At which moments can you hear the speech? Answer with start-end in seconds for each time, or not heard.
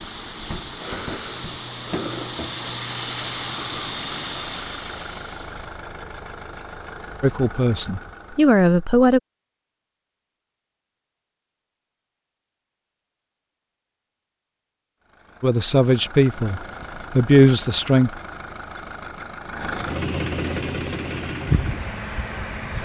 7.2-9.2, 15.4-18.1.